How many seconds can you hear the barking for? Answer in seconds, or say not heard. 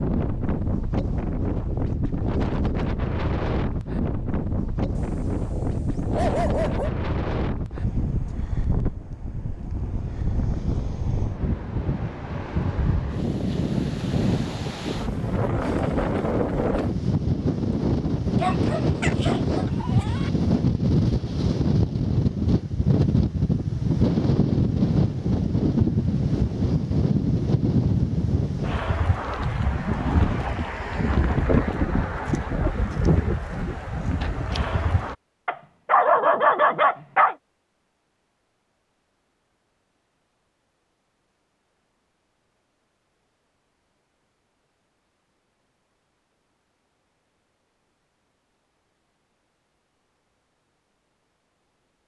6 s.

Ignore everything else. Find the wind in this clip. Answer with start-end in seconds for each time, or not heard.
0.0-35.1.